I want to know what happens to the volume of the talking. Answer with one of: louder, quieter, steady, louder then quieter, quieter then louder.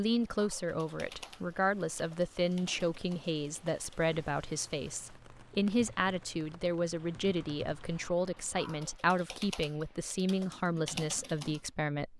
steady.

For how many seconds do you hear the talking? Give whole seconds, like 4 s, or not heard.
12 s.